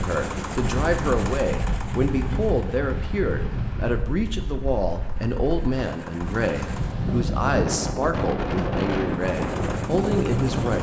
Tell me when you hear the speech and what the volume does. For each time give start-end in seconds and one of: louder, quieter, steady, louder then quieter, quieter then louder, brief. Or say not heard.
0.0-10.7 steady.